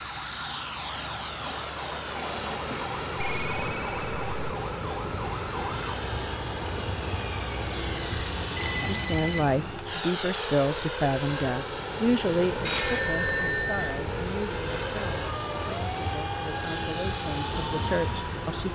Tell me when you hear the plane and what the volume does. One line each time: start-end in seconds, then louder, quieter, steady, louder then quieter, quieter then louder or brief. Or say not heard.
0.0-18.6 steady.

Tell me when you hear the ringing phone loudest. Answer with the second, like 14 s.
13 s.